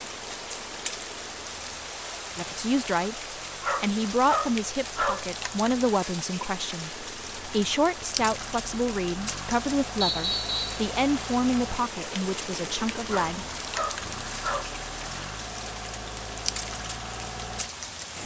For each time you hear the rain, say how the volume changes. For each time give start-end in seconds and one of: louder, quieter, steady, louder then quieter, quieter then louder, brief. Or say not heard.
0.0-18.2 steady.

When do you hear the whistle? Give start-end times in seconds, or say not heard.
10.0-10.8.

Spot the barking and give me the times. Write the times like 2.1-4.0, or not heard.
3.6-5.2, 13.1-14.7.